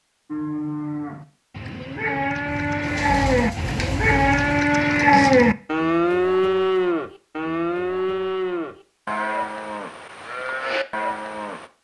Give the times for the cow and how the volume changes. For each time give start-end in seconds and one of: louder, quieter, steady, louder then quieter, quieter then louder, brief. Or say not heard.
0.3-11.7 louder then quieter.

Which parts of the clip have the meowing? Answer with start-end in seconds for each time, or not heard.
not heard.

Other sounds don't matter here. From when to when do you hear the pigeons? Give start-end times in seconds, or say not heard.
2.5-4.7.